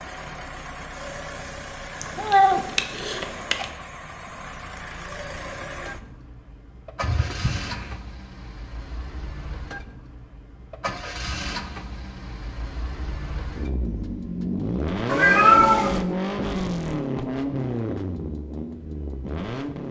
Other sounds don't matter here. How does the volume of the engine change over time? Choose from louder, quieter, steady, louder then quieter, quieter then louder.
louder.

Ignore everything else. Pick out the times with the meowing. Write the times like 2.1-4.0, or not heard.
2.0-3.6, 7.0-8.0, 15.1-16.0.